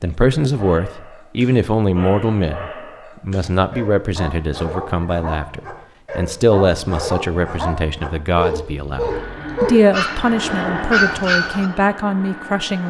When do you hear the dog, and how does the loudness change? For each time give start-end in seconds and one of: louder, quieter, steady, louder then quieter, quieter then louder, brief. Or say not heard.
0.5-11.7 louder.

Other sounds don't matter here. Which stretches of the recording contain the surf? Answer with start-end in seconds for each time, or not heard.
not heard.